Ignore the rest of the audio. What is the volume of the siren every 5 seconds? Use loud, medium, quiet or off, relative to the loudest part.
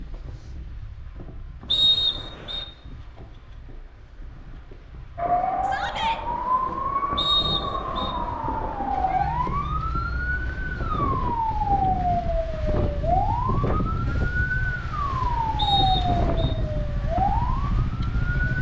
off, loud, loud, loud.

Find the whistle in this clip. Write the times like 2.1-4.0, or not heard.
1.7-2.6, 7.2-8.2, 15.6-16.6.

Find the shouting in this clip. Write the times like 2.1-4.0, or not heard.
5.6-6.2.